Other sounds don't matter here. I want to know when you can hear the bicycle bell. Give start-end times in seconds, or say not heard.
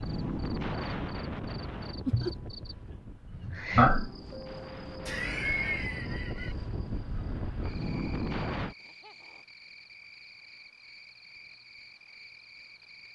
not heard.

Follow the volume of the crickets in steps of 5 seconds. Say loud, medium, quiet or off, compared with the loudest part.
loud, quiet, quiet.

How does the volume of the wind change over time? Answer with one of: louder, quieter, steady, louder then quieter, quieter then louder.
quieter then louder.